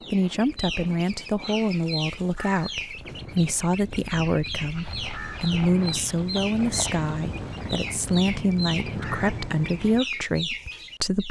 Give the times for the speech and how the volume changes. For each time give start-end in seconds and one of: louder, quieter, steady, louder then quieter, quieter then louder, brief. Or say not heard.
0.1-11.2 steady.